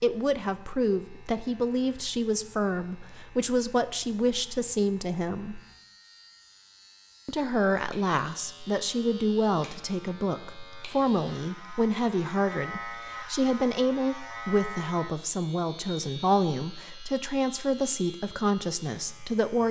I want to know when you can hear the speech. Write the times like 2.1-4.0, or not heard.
0.0-5.6, 7.2-19.6.